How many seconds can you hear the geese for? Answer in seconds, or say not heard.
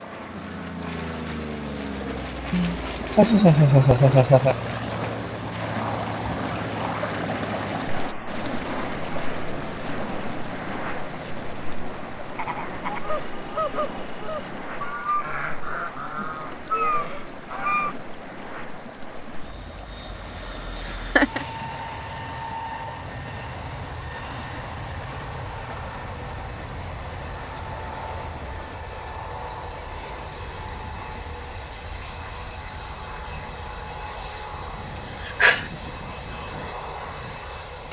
6 s.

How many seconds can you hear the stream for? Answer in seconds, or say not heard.
29 s.